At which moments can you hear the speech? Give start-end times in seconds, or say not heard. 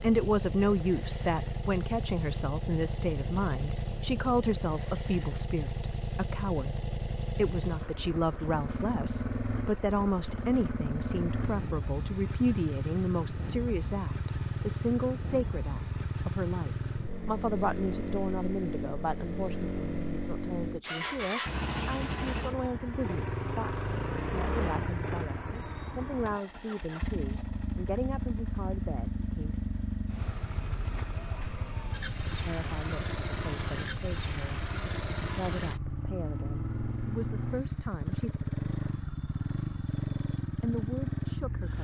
0.0-29.6, 32.3-38.3, 40.5-41.7.